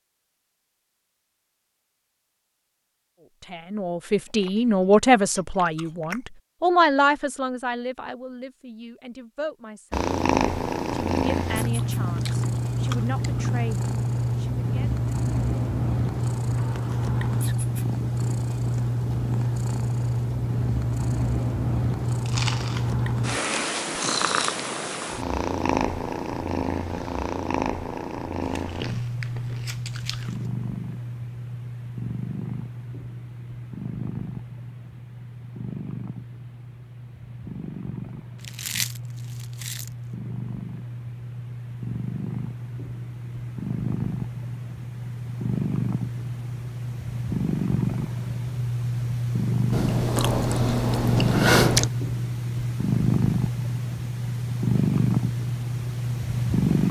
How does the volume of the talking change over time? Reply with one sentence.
The loudness of the talking goes down.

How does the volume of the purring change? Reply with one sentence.
The volume of the purring goes down, then up.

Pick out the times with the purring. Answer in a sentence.
You can hear the purring from 9.9 to 56.8 s.